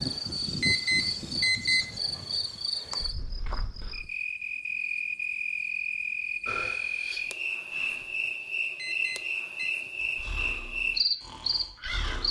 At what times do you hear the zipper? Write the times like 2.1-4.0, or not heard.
not heard.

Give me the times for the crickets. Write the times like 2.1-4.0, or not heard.
0.0-12.2.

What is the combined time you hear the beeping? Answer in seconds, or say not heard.
2 s.